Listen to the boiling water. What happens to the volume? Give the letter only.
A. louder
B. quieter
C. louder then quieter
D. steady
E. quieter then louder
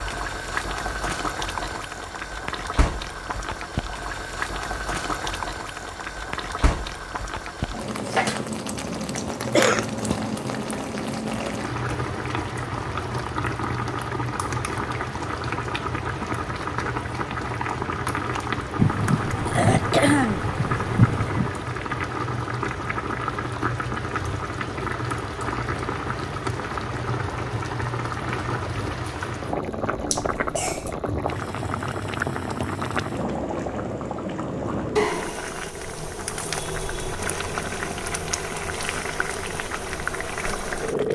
D.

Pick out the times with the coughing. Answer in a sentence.
You can hear the coughing from 9.4 to 9.8 s, from 18.8 to 21.5 s and from 30.1 to 30.9 s.